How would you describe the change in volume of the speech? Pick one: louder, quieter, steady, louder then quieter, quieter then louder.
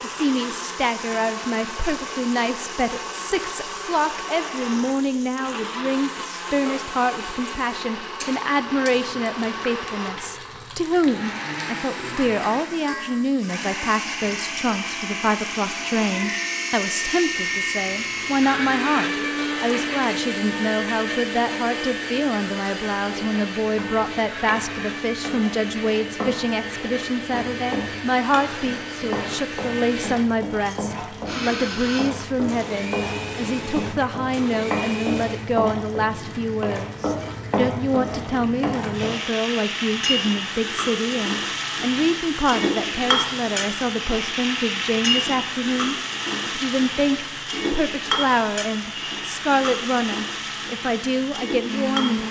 steady.